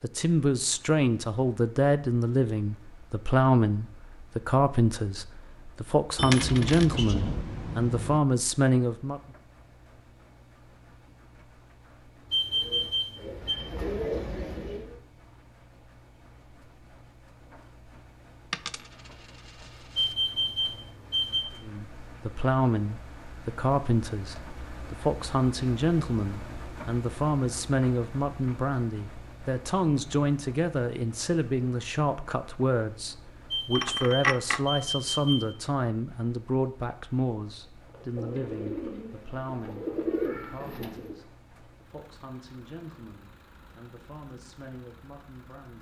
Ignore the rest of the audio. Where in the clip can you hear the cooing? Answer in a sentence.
You can hear the cooing from 12.5 to 14.9 s and from 37.9 to 41.2 s.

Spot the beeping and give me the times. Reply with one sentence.
You can hear the beeping from 12.3 to 13.6 s, from 19.9 to 21.4 s and from 33.5 to 35.5 s.